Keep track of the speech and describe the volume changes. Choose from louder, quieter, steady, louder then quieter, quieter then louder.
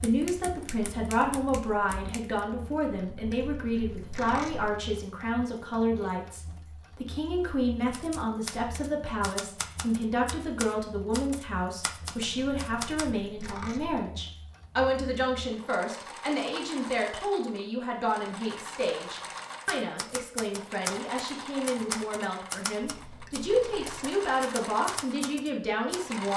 steady.